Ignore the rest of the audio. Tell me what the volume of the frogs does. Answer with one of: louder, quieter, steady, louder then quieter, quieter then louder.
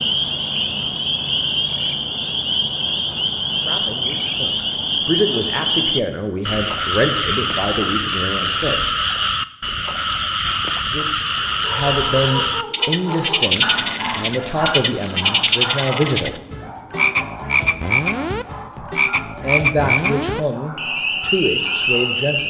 steady.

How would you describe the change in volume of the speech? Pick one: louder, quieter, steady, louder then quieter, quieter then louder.
steady.